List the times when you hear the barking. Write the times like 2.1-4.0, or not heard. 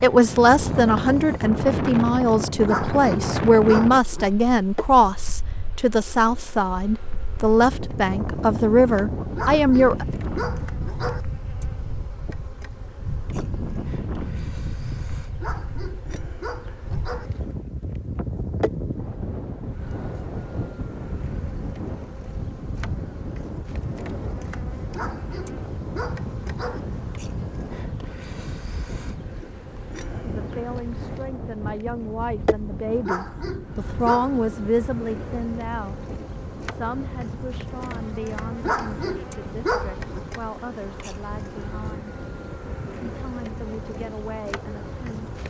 2.6-4.3, 9.3-11.2, 15.4-17.3, 24.9-26.8, 33.0-34.5, 38.6-40.2.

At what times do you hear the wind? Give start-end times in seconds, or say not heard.
0.0-45.4.